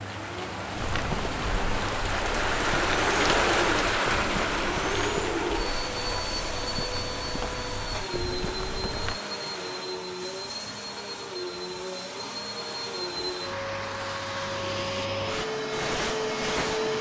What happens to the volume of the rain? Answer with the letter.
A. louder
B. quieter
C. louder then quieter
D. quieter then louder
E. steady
C.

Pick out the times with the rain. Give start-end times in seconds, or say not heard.
0.0-9.8.